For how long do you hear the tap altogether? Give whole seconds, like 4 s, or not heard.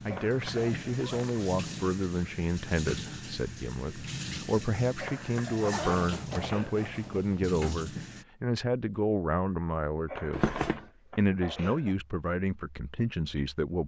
8 s.